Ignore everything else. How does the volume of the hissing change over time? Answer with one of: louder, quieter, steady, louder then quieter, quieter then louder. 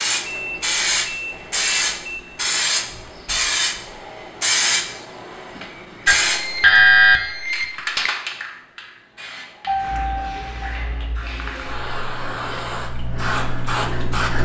quieter then louder.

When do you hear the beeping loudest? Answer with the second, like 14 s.
7 s.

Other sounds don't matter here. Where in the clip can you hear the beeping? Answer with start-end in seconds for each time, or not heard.
0.3-2.2, 6.0-8.1, 9.7-10.7.